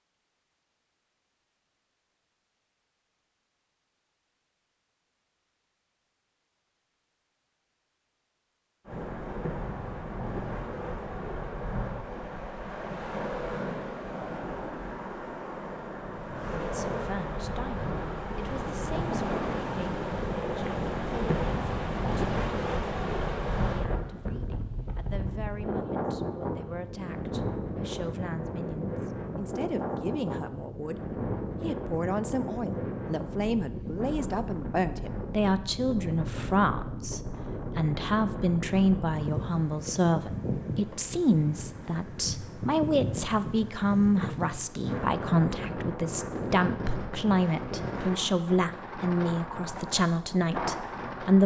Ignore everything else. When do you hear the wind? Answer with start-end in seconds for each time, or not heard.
8.8-51.4.